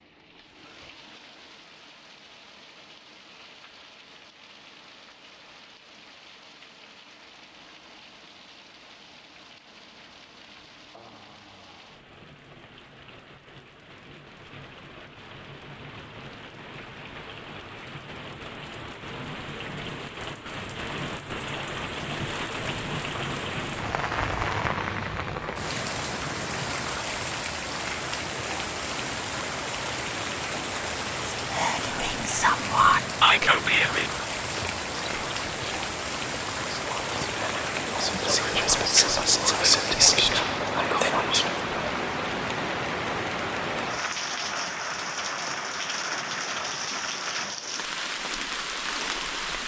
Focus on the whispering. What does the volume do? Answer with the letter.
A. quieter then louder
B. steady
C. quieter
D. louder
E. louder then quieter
A.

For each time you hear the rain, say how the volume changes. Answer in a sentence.
You can hear the rain from 0.0 to 49.6 s, getting louder.